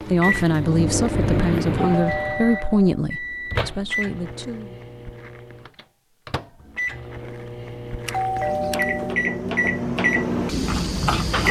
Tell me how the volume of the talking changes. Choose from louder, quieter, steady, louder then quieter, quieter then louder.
quieter.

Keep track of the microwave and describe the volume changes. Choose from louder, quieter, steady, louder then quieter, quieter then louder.
quieter then louder.